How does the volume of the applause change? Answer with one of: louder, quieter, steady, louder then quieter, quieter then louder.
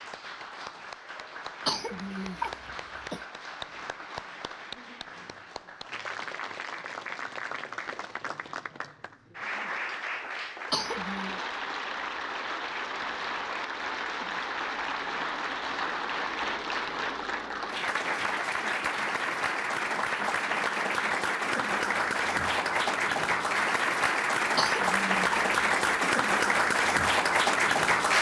louder.